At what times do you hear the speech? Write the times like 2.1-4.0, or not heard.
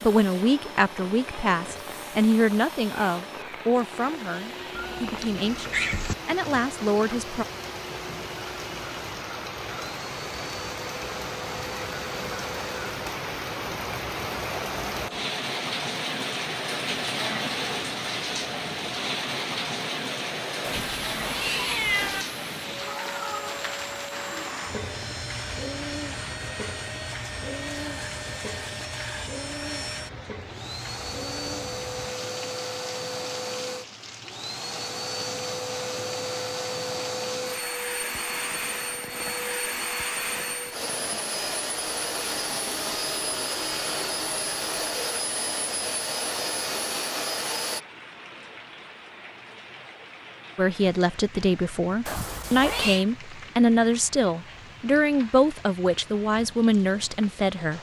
0.0-7.5, 50.5-57.7.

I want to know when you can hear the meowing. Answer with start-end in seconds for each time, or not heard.
4.8-6.2, 20.6-22.2, 52.0-53.0.